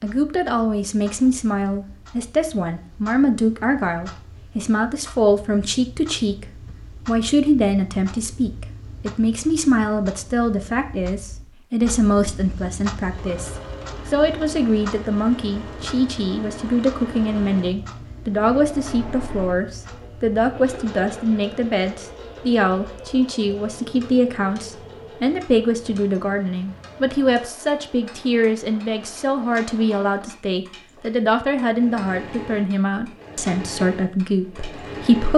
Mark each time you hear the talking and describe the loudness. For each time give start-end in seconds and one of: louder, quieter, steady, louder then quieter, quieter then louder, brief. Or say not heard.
0.0-35.3 steady.